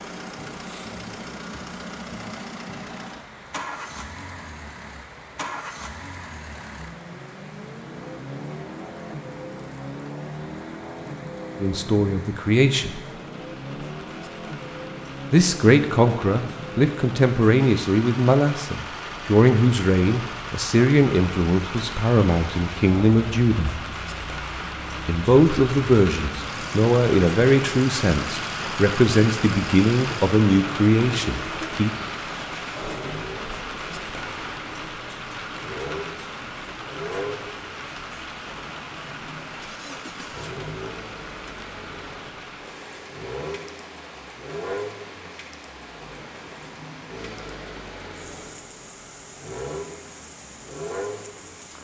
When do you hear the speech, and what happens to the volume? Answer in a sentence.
The speech can be heard briefly from 11.6 to 13.0 s; from 15.3 to 23.8 s, at a steady volume; and from 25.1 to 31.9 s, at a steady volume.